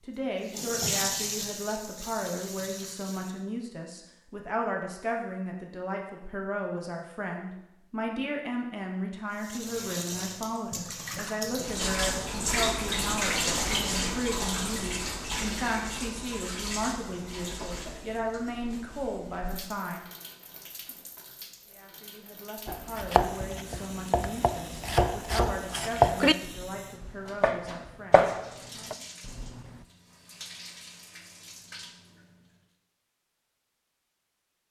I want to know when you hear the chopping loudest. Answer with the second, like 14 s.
26 s.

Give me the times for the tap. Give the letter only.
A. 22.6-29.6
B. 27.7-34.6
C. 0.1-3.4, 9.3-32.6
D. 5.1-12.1
C.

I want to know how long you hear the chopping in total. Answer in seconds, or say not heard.
7 s.